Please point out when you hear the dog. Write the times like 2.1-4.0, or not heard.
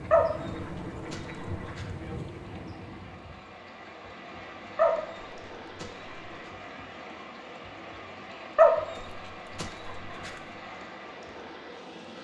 0.1-1.9, 4.8-6.1, 8.6-10.3.